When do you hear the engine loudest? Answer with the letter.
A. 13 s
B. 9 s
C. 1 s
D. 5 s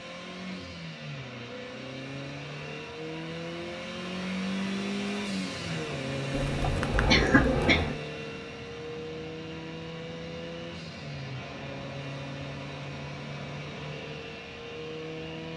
D.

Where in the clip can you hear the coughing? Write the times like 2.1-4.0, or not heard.
6.6-8.0.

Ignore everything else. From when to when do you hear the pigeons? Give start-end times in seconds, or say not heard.
6.3-8.0.